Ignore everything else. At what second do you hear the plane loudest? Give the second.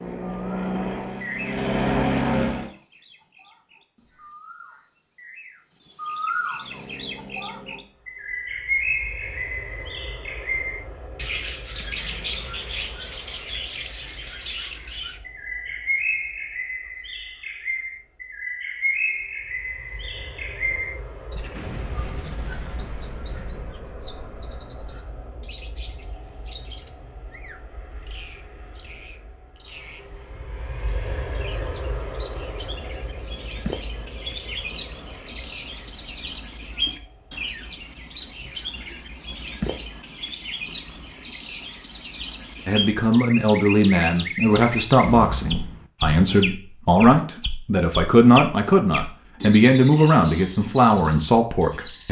2 s.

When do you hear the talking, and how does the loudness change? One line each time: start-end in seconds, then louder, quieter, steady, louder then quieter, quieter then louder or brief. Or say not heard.
42.6-52.0 steady.